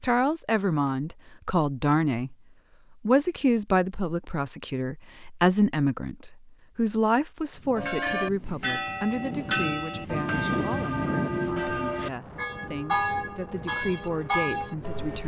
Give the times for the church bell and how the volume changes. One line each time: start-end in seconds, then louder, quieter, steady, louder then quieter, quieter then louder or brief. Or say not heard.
7.8-15.2 steady.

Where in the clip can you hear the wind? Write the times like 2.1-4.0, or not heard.
7.5-15.2.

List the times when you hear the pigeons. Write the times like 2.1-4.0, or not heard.
not heard.